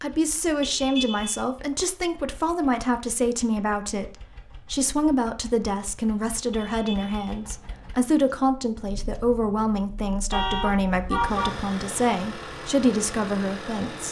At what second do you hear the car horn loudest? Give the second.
11 s.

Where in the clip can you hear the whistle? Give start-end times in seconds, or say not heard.
not heard.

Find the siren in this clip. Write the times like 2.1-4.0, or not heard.
not heard.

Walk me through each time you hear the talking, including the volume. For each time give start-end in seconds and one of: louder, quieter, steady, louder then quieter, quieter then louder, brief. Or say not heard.
0.0-14.0 steady.